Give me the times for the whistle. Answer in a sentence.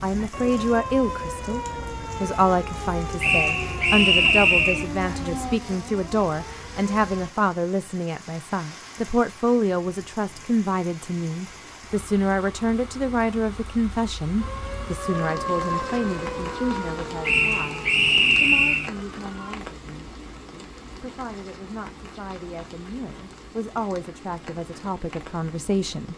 You can hear the whistle from 3.2 to 4.8 s and from 17.2 to 18.9 s.